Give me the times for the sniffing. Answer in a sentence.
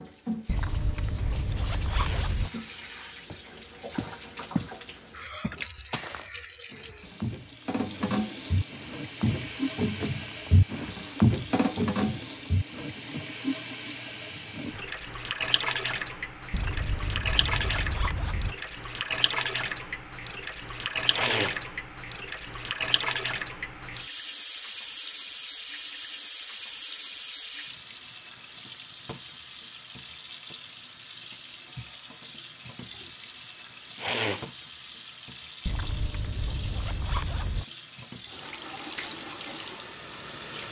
You can hear the sniffing from 1.9 to 2.4 s, from 21.1 to 21.6 s and from 34.0 to 34.5 s.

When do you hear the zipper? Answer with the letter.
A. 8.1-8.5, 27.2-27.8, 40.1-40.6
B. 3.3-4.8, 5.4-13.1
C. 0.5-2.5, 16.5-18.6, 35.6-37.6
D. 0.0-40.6
C.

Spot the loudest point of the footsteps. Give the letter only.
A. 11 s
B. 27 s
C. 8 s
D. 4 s
A.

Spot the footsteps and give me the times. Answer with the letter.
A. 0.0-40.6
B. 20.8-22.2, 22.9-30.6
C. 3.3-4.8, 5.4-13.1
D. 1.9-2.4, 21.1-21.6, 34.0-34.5
C.